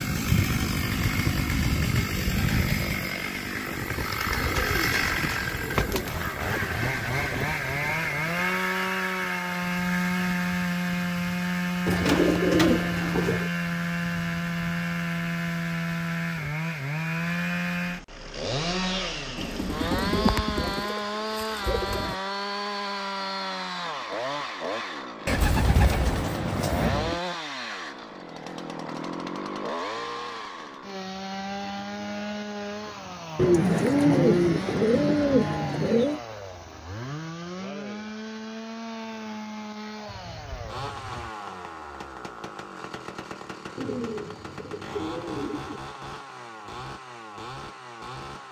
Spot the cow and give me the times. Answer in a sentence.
You can't hear the cow here.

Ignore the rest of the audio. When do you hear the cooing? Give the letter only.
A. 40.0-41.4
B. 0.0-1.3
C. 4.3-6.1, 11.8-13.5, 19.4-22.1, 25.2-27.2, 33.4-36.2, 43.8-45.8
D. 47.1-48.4
C.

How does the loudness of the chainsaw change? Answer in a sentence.
The loudness of the chainsaw goes down.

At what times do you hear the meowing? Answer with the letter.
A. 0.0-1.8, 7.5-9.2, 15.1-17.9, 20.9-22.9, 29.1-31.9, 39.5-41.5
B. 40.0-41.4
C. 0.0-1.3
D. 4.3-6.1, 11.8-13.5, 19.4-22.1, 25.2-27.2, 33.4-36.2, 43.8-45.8
B.